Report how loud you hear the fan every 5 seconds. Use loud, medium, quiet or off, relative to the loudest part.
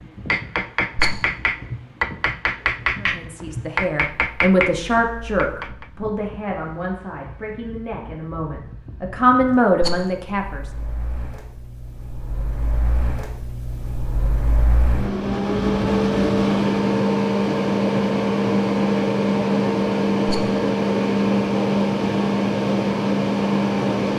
quiet, quiet, quiet, loud, loud.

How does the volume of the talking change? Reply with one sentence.
The loudness of the talking goes down, then up.